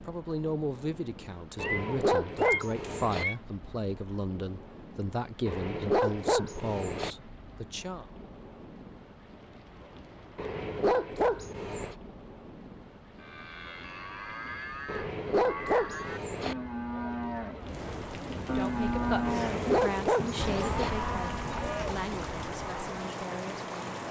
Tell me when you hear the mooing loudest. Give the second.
19 s.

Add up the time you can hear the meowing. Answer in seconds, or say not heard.
2 s.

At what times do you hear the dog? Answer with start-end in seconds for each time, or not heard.
1.6-3.2, 5.5-7.2, 10.3-11.9, 14.8-16.6, 19.2-20.9.